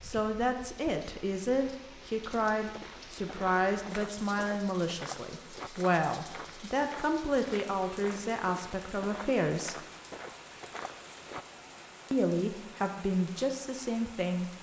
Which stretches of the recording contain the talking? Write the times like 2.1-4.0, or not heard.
0.0-9.8, 12.1-14.5.